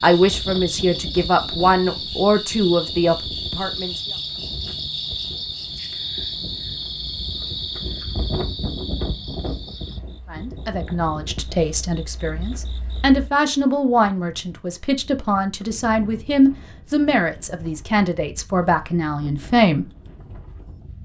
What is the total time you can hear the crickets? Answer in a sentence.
The crickets can be heard for 13 seconds in total.